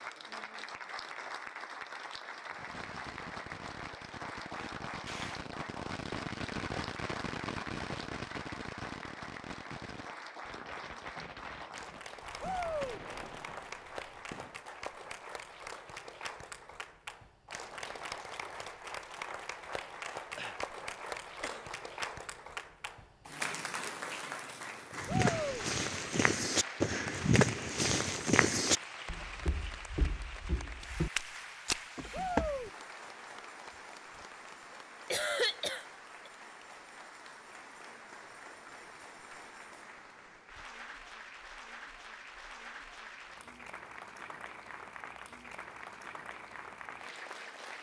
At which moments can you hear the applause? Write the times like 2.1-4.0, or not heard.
0.0-47.7.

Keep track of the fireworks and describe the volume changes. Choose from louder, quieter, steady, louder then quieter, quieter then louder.
louder then quieter.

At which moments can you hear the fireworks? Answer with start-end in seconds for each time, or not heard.
2.5-14.7.